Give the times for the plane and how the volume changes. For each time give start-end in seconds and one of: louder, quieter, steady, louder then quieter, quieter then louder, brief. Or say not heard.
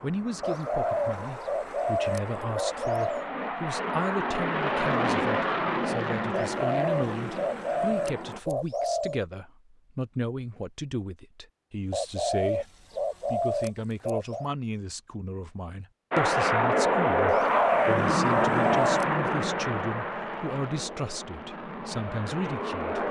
0.0-8.4 louder then quieter
16.1-23.0 quieter.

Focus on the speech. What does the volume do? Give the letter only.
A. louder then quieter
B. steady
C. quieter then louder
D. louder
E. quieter
B.